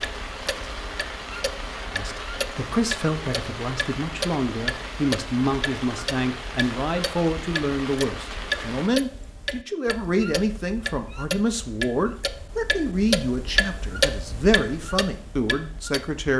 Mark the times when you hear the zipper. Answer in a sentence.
The zipper can't be heard in this clip.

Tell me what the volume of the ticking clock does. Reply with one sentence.
The volume of the ticking clock goes up.